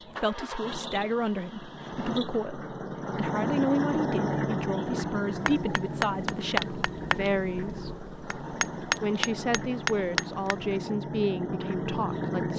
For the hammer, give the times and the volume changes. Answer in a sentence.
You can hear the hammer from 5.5 to 10.7 s, getting quieter then louder.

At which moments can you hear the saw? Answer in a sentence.
The saw can't be heard in this clip.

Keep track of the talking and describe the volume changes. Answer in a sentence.
The volume of the talking stays about the same.